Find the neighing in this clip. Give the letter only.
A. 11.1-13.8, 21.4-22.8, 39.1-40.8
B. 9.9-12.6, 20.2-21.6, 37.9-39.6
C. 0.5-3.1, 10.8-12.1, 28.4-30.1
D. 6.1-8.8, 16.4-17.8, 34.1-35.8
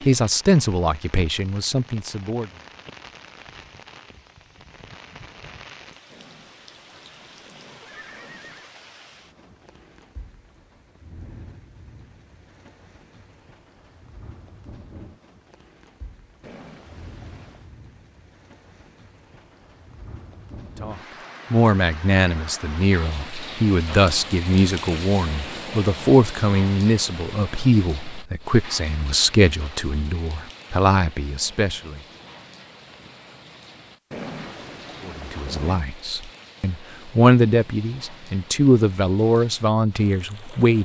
D.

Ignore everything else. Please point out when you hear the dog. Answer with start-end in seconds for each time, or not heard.
not heard.